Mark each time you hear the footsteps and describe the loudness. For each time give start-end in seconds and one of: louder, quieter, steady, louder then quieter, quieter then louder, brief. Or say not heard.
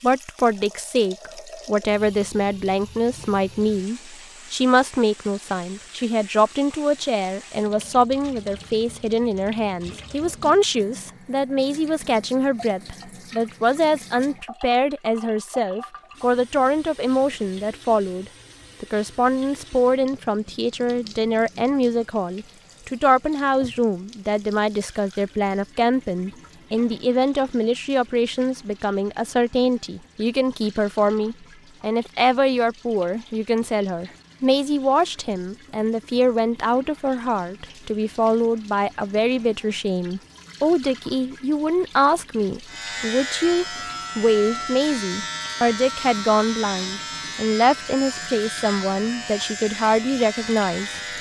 not heard.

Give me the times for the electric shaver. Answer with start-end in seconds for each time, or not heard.
42.6-51.1.